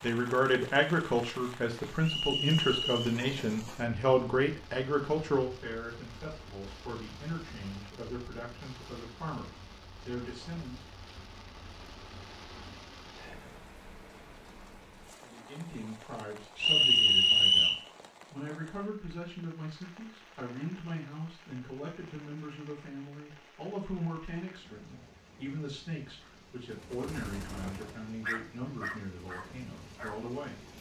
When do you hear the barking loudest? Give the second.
28 s.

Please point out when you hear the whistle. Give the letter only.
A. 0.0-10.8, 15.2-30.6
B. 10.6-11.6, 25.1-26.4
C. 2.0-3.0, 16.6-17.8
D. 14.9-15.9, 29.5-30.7
C.